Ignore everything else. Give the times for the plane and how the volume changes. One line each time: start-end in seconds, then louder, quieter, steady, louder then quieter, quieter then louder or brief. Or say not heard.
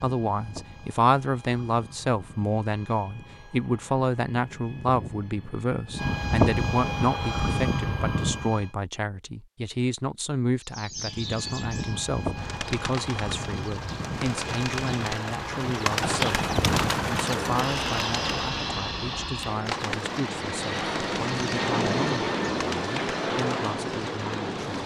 0.0-8.7 louder
10.9-24.8 louder.